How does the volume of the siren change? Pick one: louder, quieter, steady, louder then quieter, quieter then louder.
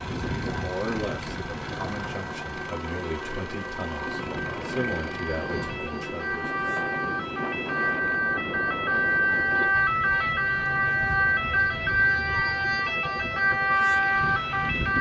louder.